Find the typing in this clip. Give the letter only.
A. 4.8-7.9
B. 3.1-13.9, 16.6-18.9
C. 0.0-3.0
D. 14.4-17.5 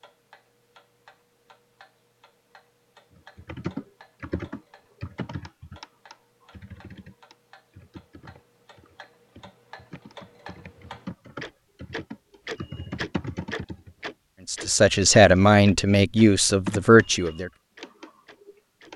B.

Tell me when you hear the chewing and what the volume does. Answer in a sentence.
You can't hear the chewing here.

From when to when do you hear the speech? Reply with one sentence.
The speech can be heard from 14.4 to 17.5 s.